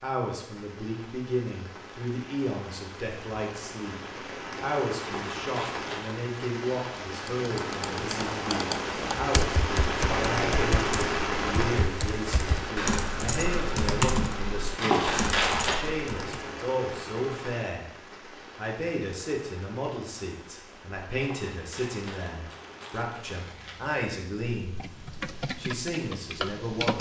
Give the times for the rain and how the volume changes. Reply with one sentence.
You can hear the rain from 0.0 to 26.9 s, getting louder then quieter.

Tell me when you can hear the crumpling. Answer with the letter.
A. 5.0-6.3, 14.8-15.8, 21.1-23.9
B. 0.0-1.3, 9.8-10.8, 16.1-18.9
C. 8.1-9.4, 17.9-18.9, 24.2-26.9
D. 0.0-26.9
A.